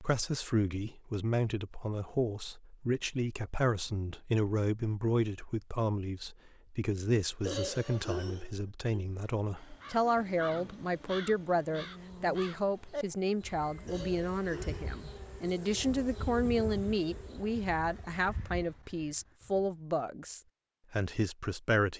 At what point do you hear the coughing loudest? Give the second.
8 s.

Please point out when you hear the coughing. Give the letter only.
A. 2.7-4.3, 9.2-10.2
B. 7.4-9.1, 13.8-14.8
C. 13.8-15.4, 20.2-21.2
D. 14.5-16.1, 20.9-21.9
B.